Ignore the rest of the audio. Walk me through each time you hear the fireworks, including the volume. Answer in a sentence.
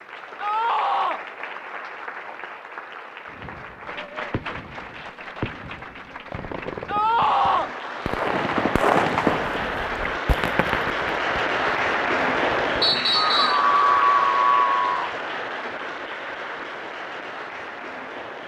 The fireworks can be heard from 3.2 to 13.0 s, getting louder then quieter.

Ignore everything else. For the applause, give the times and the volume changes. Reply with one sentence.
You can hear the applause from 0.0 to 18.4 s, getting louder then quieter.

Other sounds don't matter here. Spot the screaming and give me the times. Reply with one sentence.
You can hear the screaming from 0.4 to 1.2 s, from 6.8 to 7.7 s and from 13.3 to 15.1 s.